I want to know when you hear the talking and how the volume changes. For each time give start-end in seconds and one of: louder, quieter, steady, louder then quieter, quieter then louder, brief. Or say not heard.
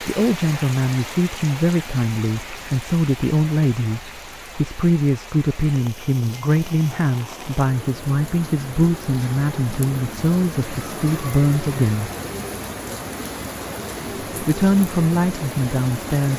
0.0-12.1 steady
14.4-16.3 brief.